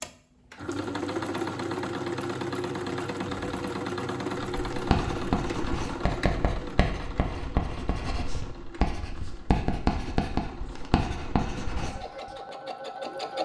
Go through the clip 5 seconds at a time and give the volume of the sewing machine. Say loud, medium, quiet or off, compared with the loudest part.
loud, medium, medium.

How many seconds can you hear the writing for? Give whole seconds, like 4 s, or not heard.
8 s.